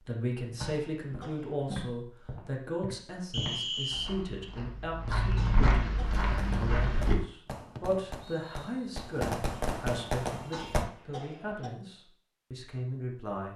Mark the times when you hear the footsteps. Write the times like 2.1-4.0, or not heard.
0.5-7.2.